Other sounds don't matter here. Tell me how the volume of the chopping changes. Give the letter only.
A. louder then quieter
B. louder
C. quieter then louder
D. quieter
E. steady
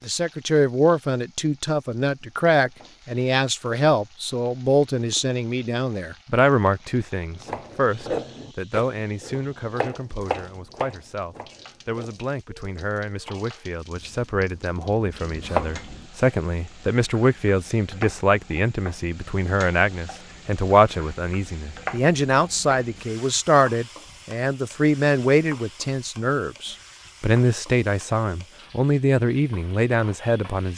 C.